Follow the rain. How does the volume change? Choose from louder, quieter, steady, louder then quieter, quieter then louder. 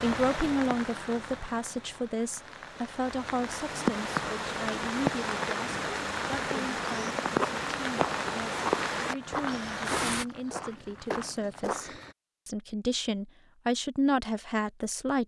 louder.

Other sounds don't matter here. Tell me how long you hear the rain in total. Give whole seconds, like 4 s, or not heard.
10 s.